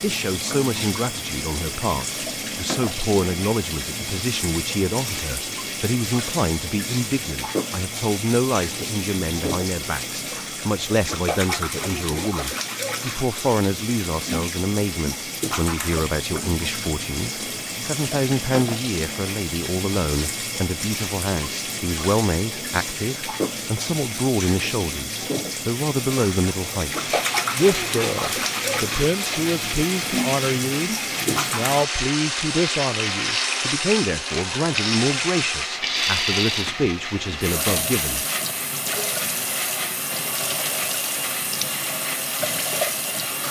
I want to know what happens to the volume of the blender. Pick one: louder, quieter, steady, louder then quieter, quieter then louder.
steady.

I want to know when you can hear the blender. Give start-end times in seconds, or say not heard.
26.9-43.4.